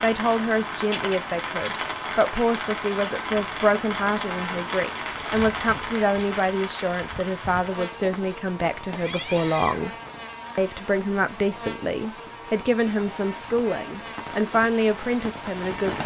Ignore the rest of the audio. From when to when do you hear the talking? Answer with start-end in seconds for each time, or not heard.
0.0-9.9, 10.6-16.0.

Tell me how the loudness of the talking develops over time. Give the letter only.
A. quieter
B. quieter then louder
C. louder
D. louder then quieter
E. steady
E.